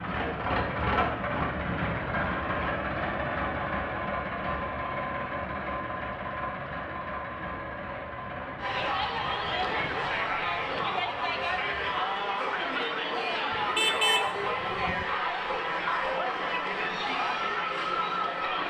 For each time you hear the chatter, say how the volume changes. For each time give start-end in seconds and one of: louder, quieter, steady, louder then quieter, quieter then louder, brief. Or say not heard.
8.6-18.6 steady.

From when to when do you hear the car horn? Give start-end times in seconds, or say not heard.
13.5-15.1.